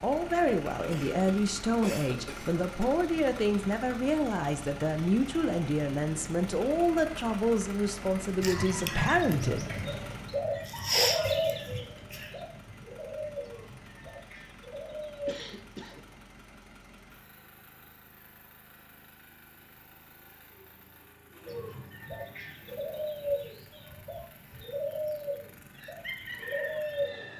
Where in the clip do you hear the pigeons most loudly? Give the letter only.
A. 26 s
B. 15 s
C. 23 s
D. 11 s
D.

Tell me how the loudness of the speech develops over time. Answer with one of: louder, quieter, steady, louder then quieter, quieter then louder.
steady.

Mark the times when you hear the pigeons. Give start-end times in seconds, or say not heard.
8.4-15.6, 21.4-27.3.